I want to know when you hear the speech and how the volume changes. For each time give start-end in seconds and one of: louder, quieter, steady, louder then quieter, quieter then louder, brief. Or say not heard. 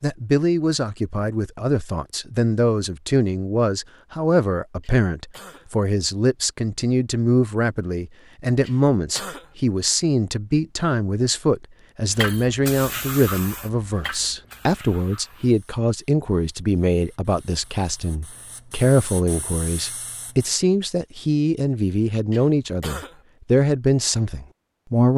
0.0-25.1 steady.